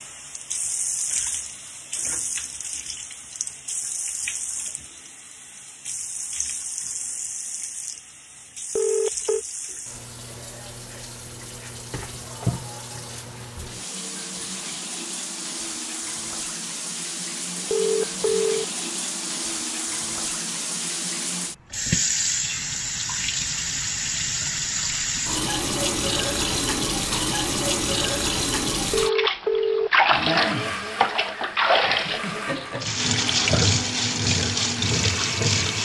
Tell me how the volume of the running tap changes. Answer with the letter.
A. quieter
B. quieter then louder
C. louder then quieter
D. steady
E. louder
E.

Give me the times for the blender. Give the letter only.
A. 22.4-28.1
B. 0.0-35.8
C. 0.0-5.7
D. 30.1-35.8
D.